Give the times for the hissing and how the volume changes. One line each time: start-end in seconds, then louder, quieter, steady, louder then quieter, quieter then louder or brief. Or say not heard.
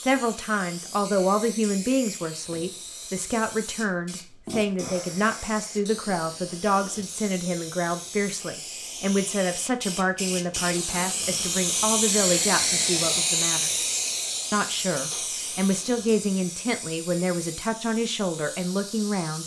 0.0-19.4 louder then quieter.